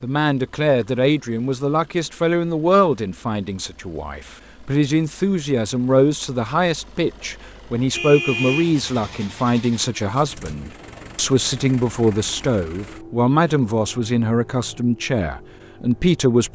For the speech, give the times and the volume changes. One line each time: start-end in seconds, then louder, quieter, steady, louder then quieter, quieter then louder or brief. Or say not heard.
0.0-16.4 steady.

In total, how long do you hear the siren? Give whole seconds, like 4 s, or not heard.
not heard.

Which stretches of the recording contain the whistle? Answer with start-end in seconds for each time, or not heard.
not heard.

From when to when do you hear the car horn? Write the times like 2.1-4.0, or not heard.
7.9-9.1.